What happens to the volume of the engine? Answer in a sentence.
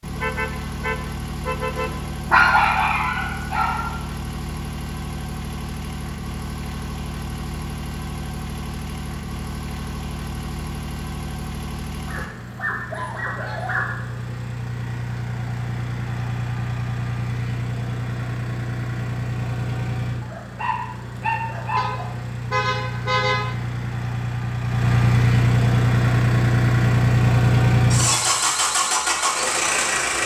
The volume of the engine goes up.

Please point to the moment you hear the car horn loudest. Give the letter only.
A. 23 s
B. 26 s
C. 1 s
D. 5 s
A.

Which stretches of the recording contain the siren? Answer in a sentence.
You can't hear the siren here.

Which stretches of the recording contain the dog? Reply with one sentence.
The dog can be heard from 1.8 to 3.9 s, from 12.1 to 13.9 s and from 20.2 to 22.1 s.